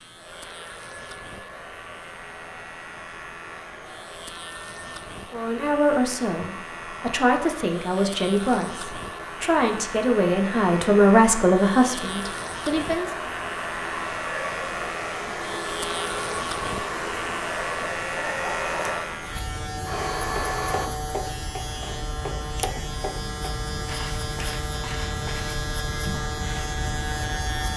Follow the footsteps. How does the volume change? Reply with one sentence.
The volume of the footsteps goes down.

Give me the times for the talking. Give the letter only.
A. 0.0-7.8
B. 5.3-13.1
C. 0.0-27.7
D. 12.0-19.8
B.